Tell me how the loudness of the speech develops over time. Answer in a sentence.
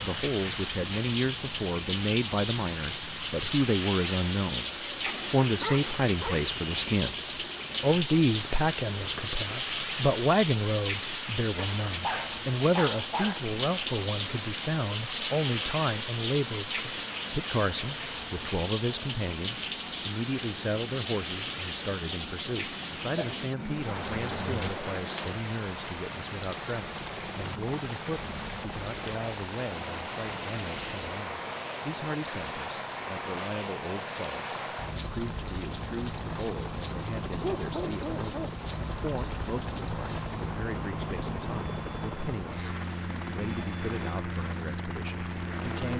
The loudness of the speech goes down.